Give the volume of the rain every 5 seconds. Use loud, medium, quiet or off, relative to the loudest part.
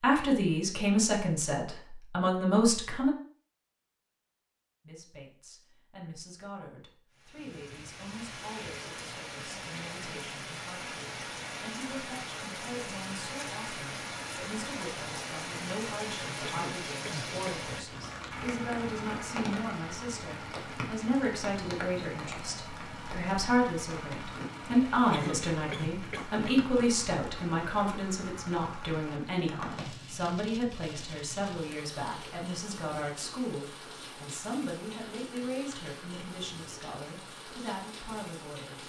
off, medium, loud, loud, loud, medium, medium, medium.